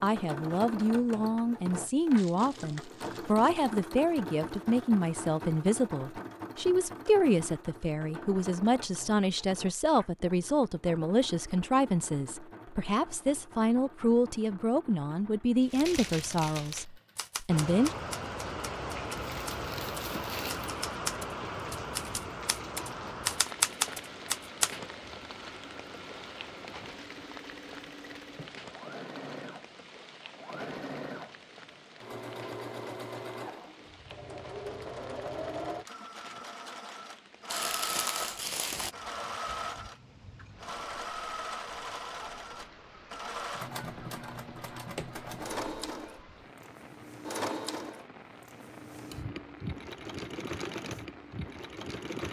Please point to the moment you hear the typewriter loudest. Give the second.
24 s.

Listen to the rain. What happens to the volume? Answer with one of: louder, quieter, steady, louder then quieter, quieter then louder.
quieter.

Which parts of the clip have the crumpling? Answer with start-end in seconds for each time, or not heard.
2.1-3.5, 19.2-20.7, 37.5-39.0.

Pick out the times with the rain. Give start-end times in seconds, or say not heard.
17.4-52.1.